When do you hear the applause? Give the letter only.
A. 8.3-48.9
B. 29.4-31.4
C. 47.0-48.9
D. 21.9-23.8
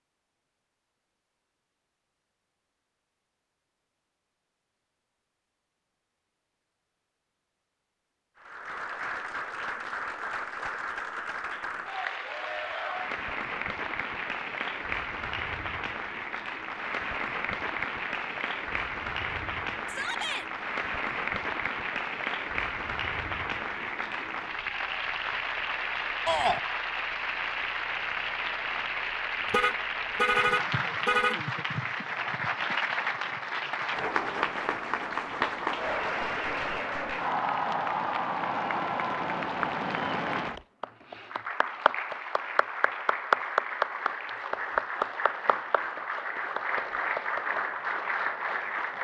A.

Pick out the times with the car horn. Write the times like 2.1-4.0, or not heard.
29.4-31.4.